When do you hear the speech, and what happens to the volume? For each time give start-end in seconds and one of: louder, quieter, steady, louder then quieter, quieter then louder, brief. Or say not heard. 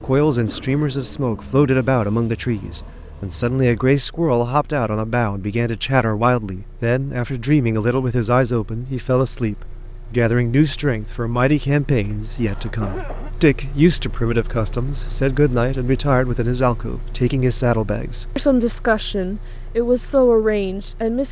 0.0-21.2 steady.